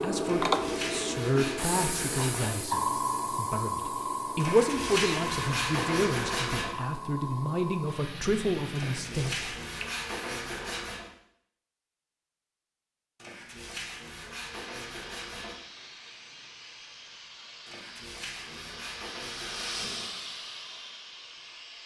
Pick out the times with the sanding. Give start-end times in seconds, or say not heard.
0.2-2.6, 4.4-6.7, 8.8-11.1, 13.2-15.6, 17.6-20.0.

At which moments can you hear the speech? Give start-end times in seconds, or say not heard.
0.0-9.5.